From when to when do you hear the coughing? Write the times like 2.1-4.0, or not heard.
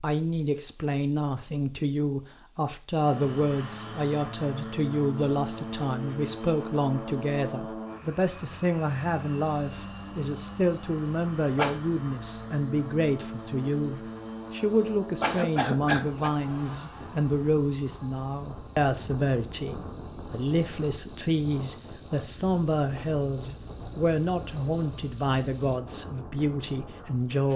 11.2-11.8, 14.8-16.3.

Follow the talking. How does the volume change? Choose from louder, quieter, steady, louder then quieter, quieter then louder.
steady.